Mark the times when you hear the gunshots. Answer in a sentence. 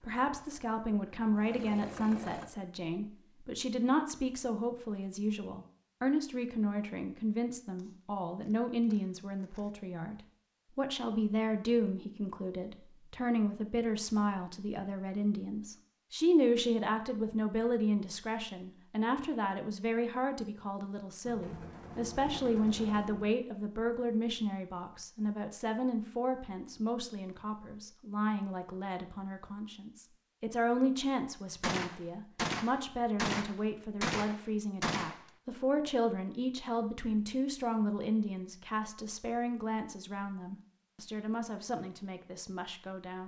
You can hear the gunshots from 7.8 to 9.7 s, from 21.2 to 23.3 s and from 31.6 to 35.3 s.